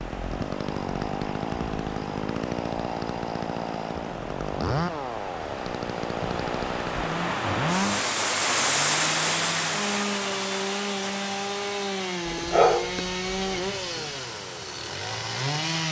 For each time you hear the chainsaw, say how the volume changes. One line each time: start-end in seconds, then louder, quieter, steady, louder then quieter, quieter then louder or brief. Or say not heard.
0.0-15.8 steady.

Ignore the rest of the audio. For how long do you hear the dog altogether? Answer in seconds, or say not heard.
2 s.